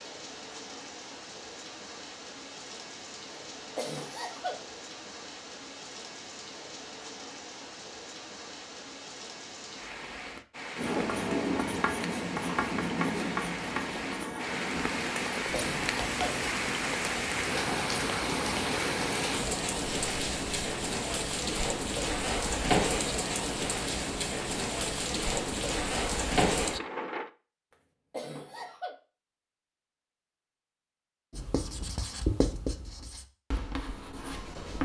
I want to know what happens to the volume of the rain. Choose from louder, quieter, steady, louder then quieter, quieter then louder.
louder.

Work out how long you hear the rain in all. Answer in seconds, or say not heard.
27 s.